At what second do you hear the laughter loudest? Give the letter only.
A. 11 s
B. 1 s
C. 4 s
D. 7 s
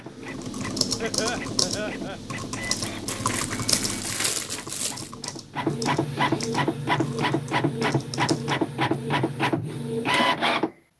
B.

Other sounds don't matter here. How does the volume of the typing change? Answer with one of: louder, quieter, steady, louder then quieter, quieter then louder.
quieter.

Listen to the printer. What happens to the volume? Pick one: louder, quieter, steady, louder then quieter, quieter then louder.
louder.